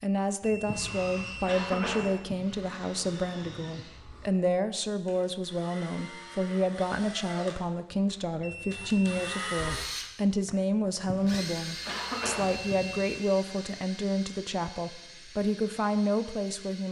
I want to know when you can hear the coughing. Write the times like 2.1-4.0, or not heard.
0.7-2.5, 11.1-12.8.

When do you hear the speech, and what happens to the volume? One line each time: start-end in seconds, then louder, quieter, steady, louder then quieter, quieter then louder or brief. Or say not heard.
0.0-16.8 steady.